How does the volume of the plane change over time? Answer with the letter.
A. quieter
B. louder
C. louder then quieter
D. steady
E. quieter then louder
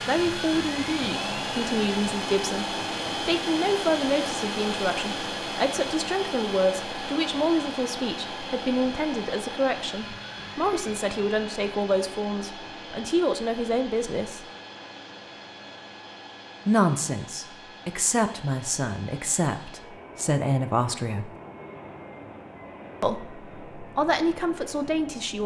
A.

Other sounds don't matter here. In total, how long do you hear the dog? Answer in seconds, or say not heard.
not heard.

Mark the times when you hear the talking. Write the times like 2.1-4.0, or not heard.
0.1-14.4, 16.6-21.3, 23.0-25.4.